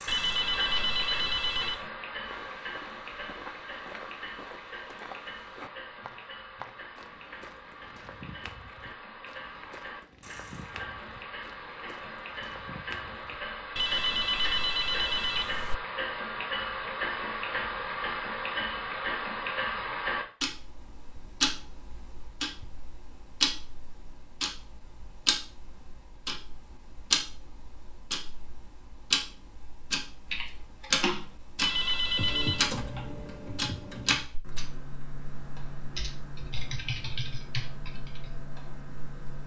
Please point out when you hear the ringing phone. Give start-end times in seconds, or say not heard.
0.1-1.9, 13.8-15.8, 31.6-32.7.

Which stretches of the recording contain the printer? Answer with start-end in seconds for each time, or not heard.
not heard.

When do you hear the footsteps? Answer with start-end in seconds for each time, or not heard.
2.2-13.4.